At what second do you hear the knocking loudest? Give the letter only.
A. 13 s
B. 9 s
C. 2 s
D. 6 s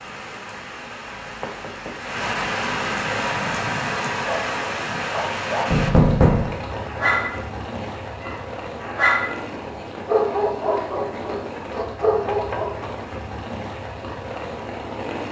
D.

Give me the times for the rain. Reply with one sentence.
The rain can be heard from 0.0 to 15.2 s.